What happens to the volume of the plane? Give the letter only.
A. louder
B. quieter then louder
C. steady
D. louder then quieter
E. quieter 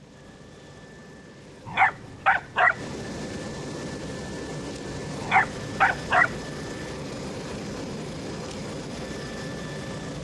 A.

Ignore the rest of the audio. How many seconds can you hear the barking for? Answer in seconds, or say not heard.
2 s.